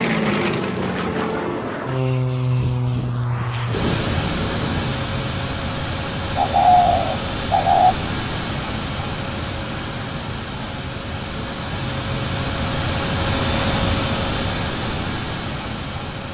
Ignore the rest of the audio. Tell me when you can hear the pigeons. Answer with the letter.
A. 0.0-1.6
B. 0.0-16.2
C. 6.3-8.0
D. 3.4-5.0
C.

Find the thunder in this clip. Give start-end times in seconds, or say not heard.
3.4-5.0.